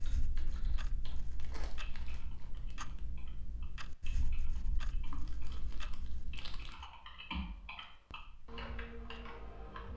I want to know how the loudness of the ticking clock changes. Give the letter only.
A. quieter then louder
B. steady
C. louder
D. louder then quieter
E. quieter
E.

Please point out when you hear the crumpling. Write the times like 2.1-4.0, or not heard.
1.1-3.0, 5.1-6.8.